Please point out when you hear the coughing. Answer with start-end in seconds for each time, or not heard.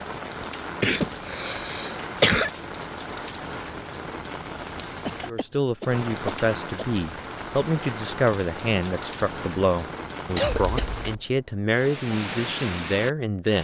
0.4-2.5, 5.0-7.0, 10.3-11.1.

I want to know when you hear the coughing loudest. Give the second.
2 s.